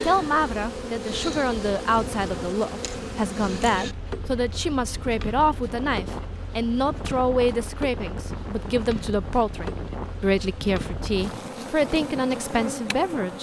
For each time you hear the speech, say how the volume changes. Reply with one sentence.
You can hear the speech from 0.0 to 13.3 s, at a steady volume.